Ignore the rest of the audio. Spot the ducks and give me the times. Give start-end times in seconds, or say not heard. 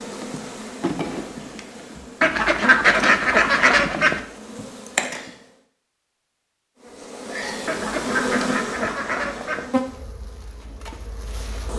2.2-4.2, 7.7-9.7.